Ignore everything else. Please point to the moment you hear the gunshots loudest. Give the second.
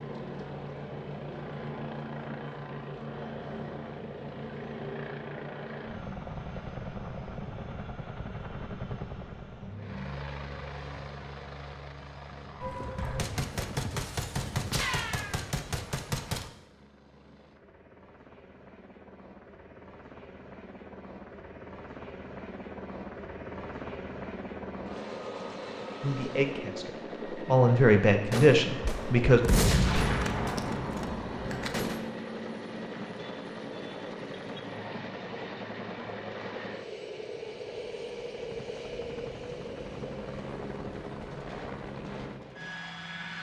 30 s.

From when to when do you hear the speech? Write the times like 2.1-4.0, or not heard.
26.0-29.4.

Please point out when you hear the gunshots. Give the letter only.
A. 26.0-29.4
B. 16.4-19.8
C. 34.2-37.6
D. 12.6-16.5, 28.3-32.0
D.